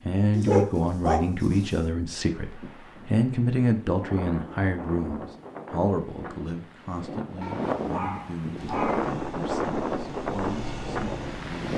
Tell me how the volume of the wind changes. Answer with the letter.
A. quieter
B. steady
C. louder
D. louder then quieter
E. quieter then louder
C.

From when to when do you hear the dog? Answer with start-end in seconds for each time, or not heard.
0.3-1.8, 7.4-9.1.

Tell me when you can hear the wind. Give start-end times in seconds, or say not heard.
2.2-11.7.